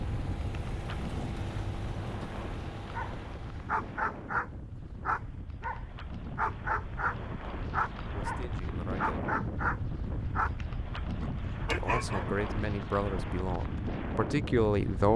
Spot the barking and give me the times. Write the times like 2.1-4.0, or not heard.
2.9-12.2.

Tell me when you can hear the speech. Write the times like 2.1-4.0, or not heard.
8.1-9.3, 11.7-15.1.